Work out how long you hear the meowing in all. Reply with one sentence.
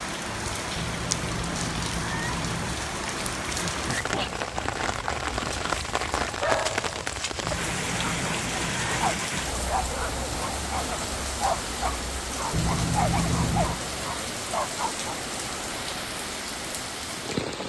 You can hear the meowing for 5 seconds altogether.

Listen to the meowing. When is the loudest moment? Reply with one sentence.
The loudest moment of the meowing is at 13 seconds.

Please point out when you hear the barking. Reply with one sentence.
You can hear the barking from 3.5 to 15.2 s.